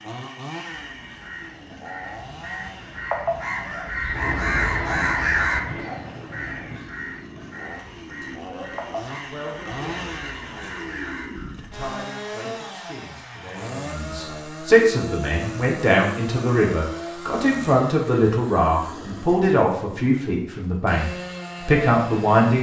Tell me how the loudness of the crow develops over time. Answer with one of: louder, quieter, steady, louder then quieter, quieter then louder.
louder then quieter.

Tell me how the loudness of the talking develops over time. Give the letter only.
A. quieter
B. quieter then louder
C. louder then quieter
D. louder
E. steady
D.